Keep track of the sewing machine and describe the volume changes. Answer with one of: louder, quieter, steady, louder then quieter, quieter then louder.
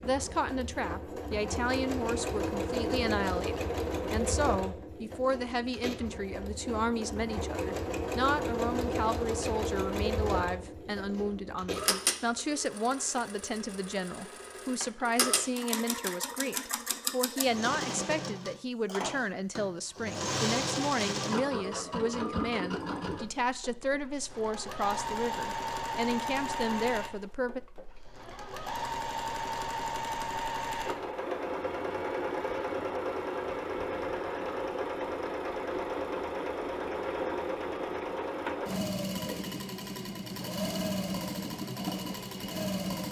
steady.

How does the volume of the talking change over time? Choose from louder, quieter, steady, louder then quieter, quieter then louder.
steady.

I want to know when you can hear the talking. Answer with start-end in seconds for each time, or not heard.
0.0-27.6.